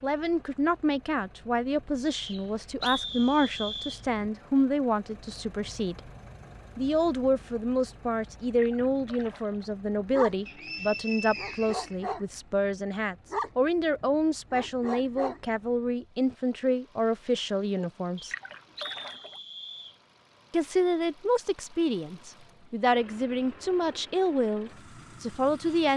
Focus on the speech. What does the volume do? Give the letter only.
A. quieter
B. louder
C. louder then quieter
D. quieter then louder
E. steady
E.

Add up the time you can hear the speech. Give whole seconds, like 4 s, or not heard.
23 s.